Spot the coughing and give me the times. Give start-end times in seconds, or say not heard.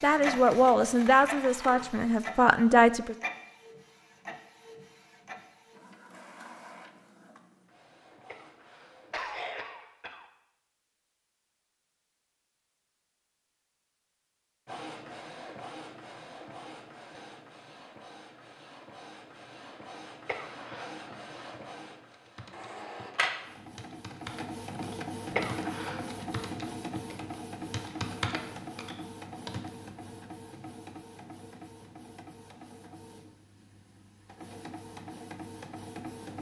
8.2-10.2, 20.2-21.0, 25.4-26.1.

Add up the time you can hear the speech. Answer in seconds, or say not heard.
3 s.